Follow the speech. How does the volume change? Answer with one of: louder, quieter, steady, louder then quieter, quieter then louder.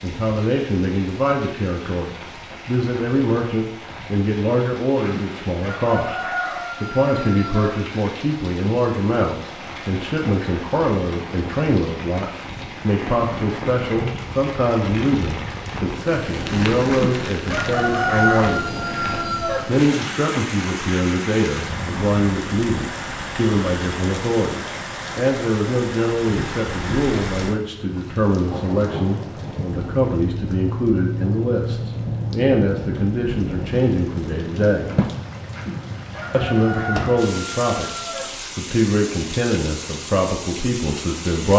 steady.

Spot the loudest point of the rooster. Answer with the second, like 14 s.
18 s.